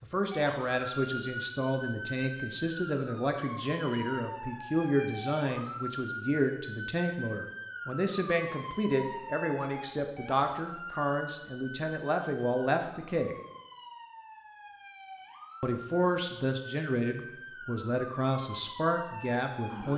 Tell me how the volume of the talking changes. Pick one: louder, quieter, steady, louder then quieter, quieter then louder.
steady.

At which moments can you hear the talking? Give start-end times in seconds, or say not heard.
0.0-13.3, 15.6-19.9.